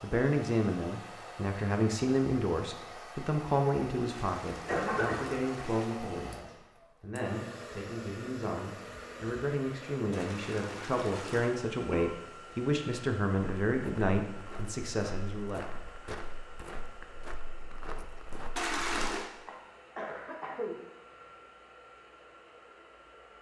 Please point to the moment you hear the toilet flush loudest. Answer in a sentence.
The loudest moment of the toilet flush is at 19 seconds.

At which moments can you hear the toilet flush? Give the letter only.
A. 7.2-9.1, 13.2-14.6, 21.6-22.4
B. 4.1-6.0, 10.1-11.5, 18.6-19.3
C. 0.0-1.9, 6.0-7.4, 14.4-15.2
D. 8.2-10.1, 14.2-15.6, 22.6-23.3
B.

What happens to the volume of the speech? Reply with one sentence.
The volume of the speech goes down, then up.